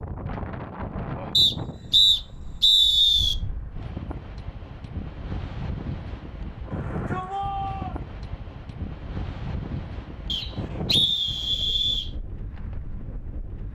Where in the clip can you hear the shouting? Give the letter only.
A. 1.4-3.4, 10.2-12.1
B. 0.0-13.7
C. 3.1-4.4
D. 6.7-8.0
D.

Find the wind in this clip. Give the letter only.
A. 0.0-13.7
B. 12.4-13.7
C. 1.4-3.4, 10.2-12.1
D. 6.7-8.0
A.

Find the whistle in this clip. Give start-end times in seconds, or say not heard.
1.4-3.4, 10.2-12.1.